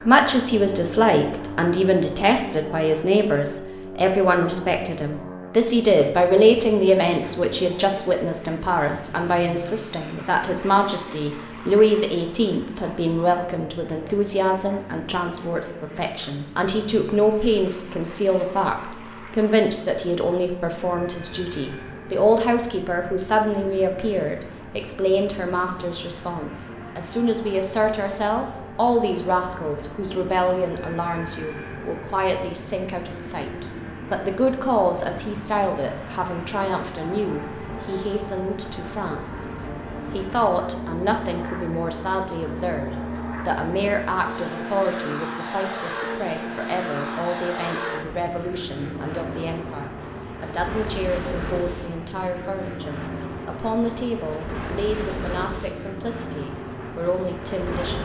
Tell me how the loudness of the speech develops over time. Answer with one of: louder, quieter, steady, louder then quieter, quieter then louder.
quieter.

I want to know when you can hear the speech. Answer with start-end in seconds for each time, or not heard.
0.0-39.5, 40.1-58.0.